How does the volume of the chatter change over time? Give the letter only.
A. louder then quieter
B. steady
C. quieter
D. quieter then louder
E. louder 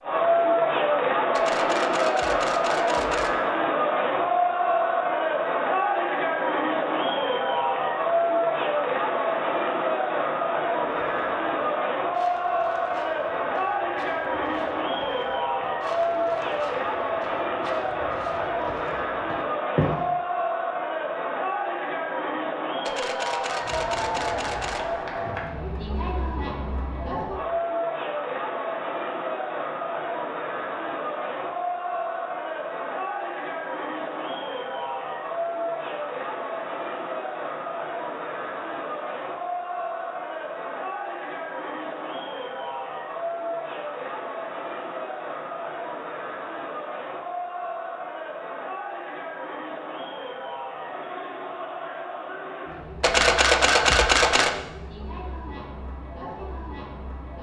C.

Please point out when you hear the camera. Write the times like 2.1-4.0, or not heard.
1.3-3.4, 22.9-24.9, 53.0-54.5.